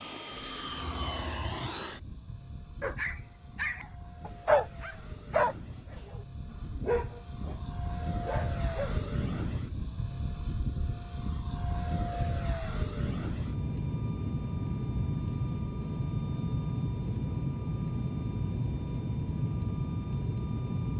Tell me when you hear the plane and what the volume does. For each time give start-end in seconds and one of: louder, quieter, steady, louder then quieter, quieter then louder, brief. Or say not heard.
0.0-20.9 louder.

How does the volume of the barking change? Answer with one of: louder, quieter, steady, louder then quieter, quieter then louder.
louder then quieter.